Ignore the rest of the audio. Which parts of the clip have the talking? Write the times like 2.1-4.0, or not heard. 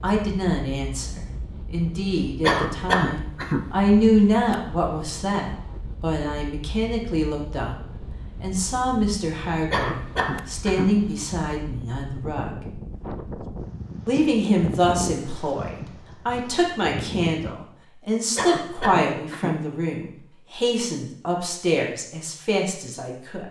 0.0-7.8, 8.4-12.6, 14.1-23.4.